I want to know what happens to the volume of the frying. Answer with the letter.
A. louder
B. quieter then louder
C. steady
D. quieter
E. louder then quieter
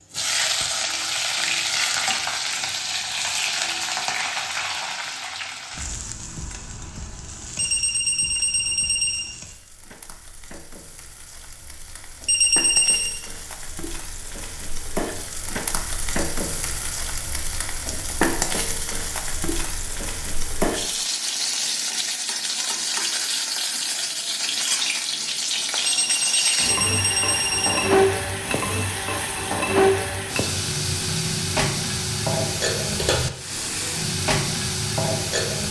B.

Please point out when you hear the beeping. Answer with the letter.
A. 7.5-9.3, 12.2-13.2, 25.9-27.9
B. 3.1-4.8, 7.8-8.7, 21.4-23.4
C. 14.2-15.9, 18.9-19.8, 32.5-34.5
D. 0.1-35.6
A.